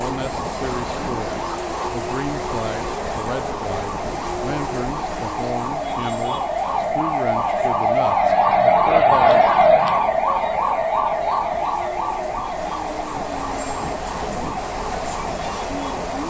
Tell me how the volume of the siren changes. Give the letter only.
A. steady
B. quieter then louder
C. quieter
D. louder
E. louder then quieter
E.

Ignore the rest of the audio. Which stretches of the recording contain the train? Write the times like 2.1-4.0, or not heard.
0.0-16.2.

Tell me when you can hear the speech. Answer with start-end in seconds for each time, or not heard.
0.0-9.6.